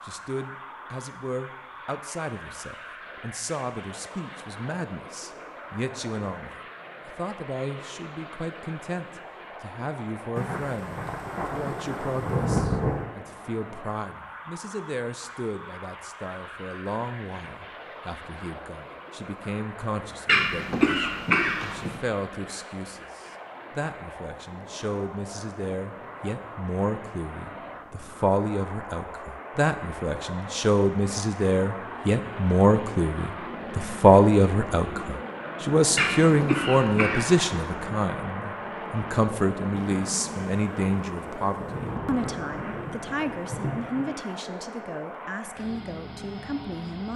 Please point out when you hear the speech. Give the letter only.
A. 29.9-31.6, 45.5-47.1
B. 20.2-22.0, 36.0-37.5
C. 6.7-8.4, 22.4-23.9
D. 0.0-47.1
D.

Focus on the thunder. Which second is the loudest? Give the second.
13 s.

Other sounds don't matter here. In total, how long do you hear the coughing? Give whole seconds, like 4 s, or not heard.
3 s.